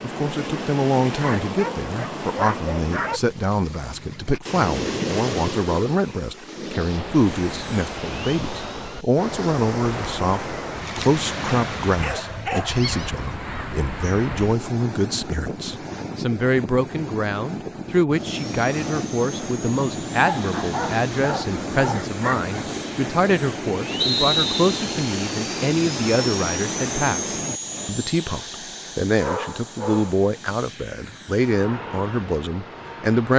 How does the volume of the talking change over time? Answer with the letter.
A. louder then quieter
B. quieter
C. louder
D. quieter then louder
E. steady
E.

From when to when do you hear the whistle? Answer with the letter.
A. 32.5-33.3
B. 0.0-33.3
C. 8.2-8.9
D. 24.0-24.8
D.